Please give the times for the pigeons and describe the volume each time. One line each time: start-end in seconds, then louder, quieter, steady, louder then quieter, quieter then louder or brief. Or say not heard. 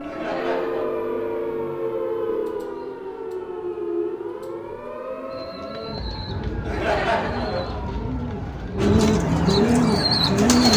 5.3-10.7 louder.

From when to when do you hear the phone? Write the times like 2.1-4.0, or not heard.
0.3-2.6.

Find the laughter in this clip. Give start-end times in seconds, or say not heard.
0.0-0.8, 6.7-7.9.